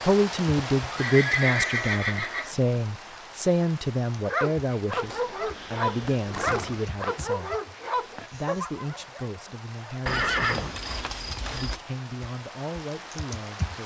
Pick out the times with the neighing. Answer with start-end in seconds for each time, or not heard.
0.9-2.5, 5.0-6.9, 10.1-11.8.